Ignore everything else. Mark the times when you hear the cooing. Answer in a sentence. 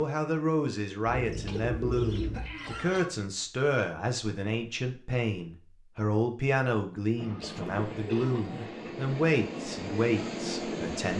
You can hear the cooing from 1.1 to 3.0 s and from 7.5 to 8.7 s.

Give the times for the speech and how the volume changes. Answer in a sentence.
The speech can be heard from 0.0 to 11.1 s, at a steady volume.